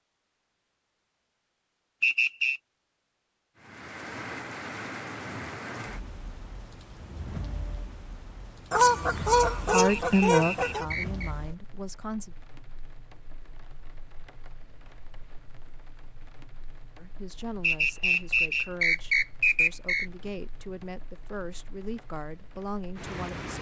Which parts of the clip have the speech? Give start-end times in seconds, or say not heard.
9.7-12.3, 16.9-23.5.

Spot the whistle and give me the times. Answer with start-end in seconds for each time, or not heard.
2.0-2.6, 9.8-11.3, 17.6-20.1.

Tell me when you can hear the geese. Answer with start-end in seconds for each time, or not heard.
8.7-10.8.